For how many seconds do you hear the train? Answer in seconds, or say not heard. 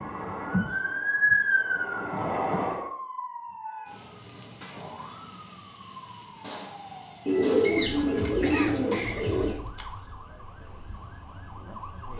3 s.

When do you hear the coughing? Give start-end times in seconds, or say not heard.
8.2-9.2.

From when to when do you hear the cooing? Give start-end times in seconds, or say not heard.
7.2-9.6.